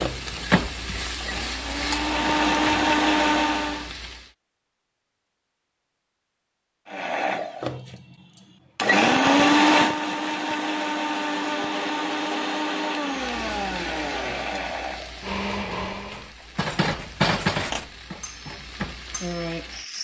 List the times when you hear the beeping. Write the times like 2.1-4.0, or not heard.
not heard.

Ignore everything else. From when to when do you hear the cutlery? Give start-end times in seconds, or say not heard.
16.1-19.9.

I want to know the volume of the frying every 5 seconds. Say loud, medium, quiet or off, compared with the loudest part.
loud, off, medium, loud.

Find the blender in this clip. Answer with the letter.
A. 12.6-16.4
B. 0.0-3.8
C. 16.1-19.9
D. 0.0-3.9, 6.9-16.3
D.